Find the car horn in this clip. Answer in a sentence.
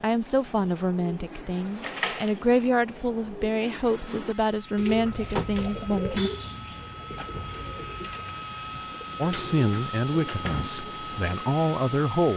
You can hear the car horn from 7.1 to 8.2 s.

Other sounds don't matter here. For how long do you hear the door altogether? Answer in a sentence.
You can hear the door for 4 seconds altogether.